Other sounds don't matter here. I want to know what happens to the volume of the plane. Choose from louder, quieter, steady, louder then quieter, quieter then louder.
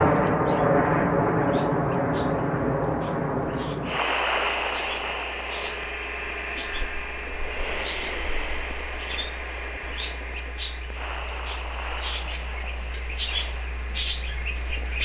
quieter.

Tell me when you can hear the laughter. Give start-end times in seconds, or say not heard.
not heard.